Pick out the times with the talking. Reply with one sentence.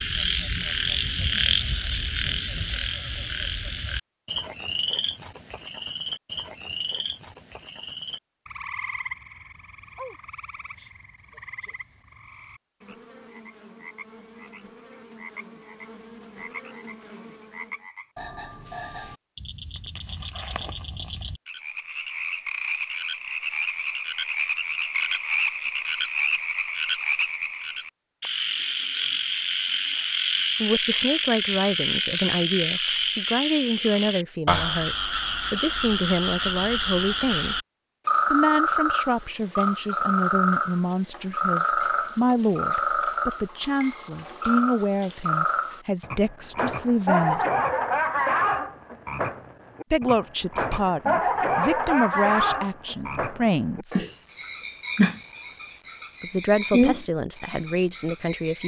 The talking can be heard from 30.6 to 37.6 s, from 38.3 to 47.5 s, from 49.9 to 54.0 s and from 56.2 to 58.6 s.